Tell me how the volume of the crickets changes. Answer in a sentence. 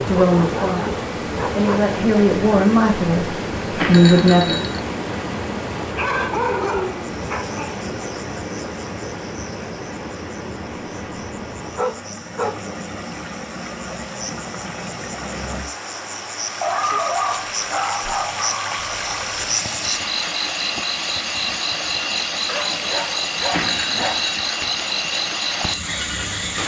The loudness of the crickets goes up.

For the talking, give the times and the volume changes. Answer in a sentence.
You can hear the talking from 0.1 to 4.6 s, getting louder.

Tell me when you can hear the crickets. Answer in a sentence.
The crickets can be heard from 6.9 to 26.6 s.